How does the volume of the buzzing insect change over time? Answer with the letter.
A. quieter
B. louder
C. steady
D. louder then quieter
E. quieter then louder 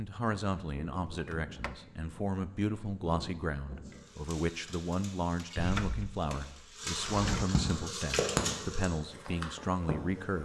B.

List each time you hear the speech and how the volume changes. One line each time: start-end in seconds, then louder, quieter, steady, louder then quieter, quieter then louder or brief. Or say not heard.
0.0-10.3 steady.